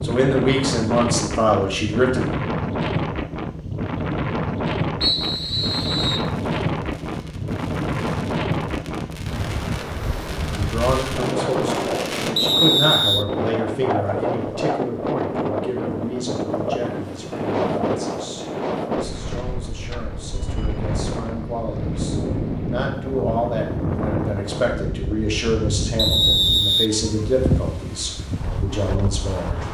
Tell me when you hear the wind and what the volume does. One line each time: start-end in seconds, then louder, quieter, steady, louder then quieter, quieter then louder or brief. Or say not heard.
0.0-29.6 steady.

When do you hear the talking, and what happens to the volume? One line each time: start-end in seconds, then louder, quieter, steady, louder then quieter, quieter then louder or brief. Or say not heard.
0.0-2.2 brief
10.5-29.6 quieter then louder.